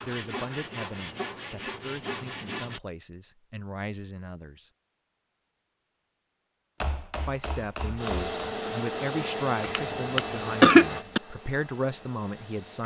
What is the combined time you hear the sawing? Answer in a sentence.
You can hear the sawing for 3 seconds altogether.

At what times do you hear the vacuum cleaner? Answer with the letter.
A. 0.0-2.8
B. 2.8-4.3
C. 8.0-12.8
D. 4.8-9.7
C.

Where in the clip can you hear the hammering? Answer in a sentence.
You can hear the hammering from 6.8 to 8.3 s.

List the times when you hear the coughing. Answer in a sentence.
The coughing can be heard from 9.7 to 11.2 s.